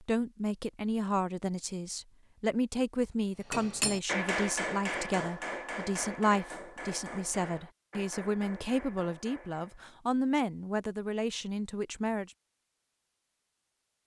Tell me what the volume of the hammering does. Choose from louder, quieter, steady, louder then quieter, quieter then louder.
quieter.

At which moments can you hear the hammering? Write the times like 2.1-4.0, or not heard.
3.5-9.9.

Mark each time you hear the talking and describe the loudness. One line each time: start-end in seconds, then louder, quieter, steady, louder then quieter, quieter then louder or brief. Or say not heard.
0.0-12.3 steady.